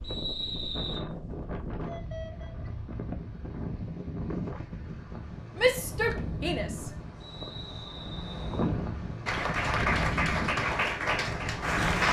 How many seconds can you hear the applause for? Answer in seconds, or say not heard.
3 s.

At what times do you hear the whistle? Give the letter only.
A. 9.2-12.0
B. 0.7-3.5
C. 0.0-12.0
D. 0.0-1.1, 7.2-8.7
D.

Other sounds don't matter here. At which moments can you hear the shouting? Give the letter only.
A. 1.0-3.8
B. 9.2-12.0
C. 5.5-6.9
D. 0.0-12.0
C.